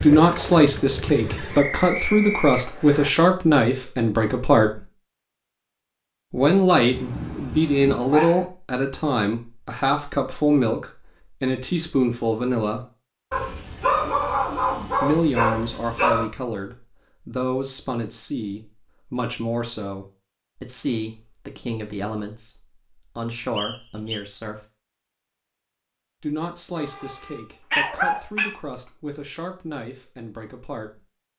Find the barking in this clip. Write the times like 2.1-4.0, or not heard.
6.9-8.4, 13.3-16.2, 26.8-28.5.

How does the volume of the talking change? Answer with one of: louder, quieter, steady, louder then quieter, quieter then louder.
quieter.